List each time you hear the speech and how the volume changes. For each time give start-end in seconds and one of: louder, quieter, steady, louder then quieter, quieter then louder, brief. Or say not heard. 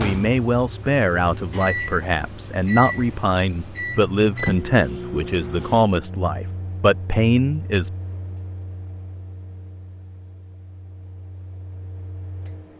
0.0-7.9 steady.